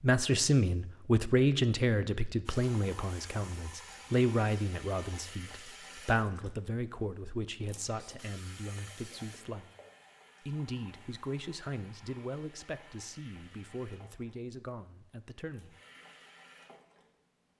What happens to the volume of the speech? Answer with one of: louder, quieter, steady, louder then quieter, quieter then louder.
quieter.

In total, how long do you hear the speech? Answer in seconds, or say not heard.
15 s.